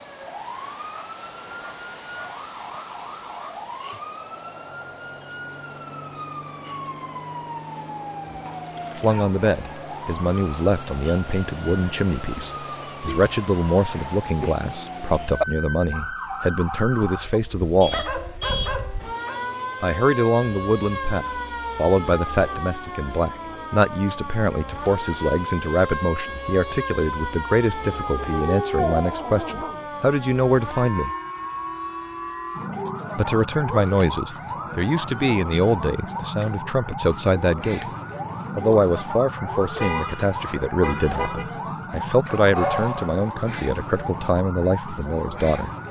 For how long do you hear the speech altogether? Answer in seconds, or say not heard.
32 s.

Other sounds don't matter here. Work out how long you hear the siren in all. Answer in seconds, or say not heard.
46 s.